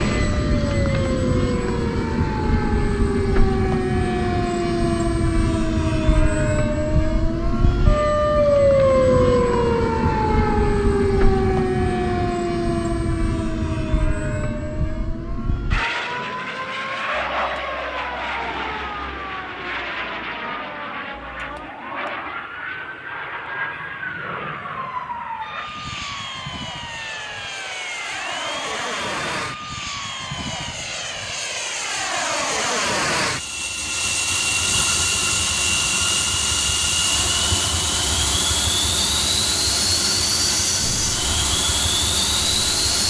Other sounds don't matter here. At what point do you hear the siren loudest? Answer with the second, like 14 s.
9 s.